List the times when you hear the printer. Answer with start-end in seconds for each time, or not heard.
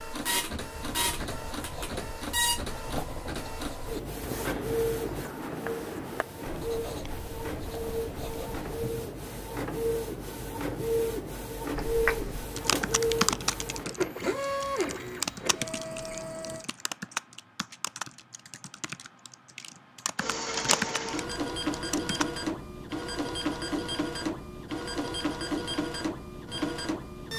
0.0-16.6, 20.1-27.3.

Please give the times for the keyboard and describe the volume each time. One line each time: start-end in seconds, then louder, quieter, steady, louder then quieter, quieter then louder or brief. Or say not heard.
11.8-22.2 quieter then louder.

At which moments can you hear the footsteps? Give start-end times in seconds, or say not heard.
not heard.